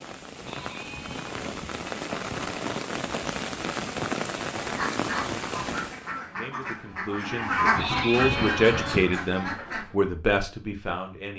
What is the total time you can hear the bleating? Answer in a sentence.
You can hear the bleating for 3 seconds altogether.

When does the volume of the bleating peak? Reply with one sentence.
The loudest moment of the bleating is at 8 seconds.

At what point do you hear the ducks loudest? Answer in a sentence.
The loudest moment of the ducks is at 8 seconds.